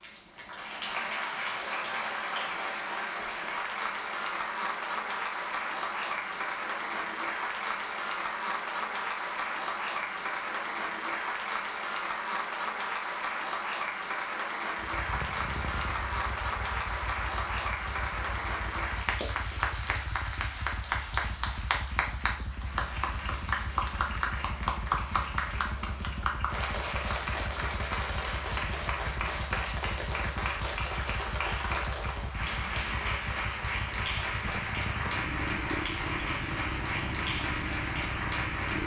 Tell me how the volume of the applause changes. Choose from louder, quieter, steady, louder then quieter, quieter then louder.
steady.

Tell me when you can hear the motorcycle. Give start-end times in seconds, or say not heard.
14.8-38.8.